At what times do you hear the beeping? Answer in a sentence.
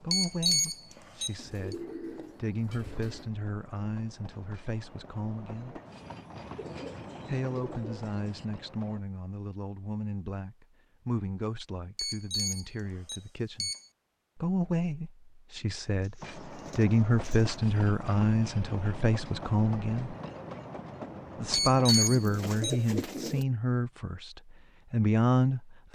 You can hear the beeping from 0.1 to 1.8 s, from 11.9 to 13.8 s and from 21.5 to 22.8 s.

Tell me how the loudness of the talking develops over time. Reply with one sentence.
The volume of the talking goes up.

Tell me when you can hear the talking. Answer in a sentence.
The talking can be heard from 0.0 to 5.8 s, from 7.2 to 13.7 s, from 14.3 to 20.1 s and from 21.4 to 25.9 s.